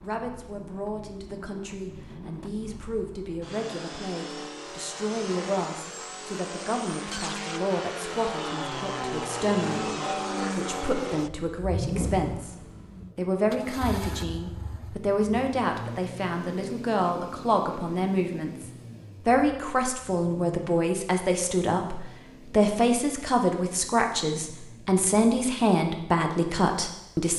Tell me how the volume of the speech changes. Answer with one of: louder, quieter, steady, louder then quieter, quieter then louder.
louder.